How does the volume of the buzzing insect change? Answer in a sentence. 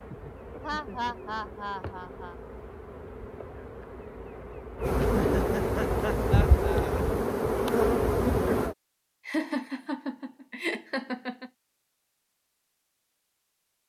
The loudness of the buzzing insect goes up.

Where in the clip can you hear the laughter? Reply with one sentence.
The laughter can be heard from 0.6 to 2.4 s, from 5.0 to 7.2 s and from 9.2 to 11.5 s.